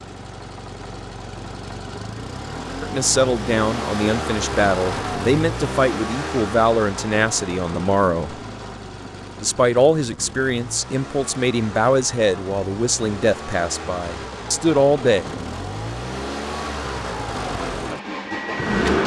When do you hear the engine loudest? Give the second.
19 s.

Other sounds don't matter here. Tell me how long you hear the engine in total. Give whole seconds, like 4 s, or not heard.
19 s.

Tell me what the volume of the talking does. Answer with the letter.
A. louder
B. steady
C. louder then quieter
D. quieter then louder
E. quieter
B.